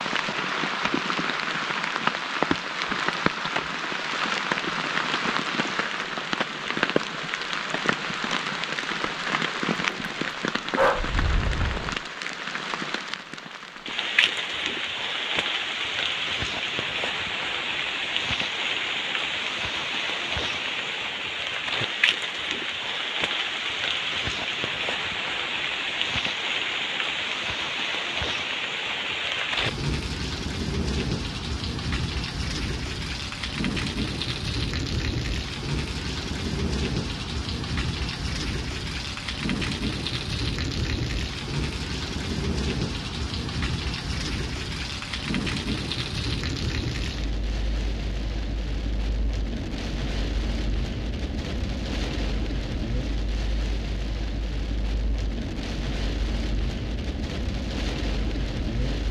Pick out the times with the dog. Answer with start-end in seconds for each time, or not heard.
9.8-11.1.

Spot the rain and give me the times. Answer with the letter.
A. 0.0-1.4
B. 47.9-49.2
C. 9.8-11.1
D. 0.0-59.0
D.